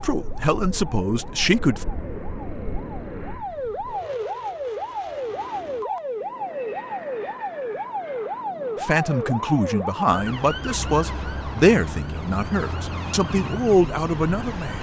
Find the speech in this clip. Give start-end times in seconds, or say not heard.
0.0-1.9, 8.8-14.7.